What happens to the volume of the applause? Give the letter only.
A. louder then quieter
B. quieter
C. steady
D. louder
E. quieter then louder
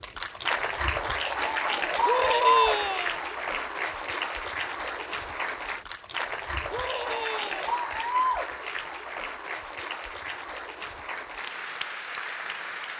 B.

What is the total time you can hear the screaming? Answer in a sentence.
You can hear the screaming for 2 seconds altogether.